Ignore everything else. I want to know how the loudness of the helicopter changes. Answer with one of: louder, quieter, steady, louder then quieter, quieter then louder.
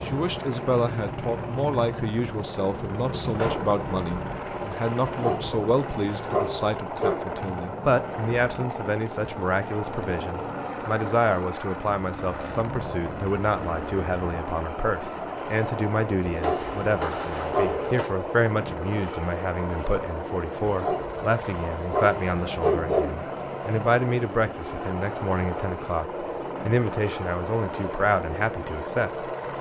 steady.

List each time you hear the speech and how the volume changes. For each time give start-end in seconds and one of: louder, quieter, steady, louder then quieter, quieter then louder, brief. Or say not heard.
0.0-29.3 steady.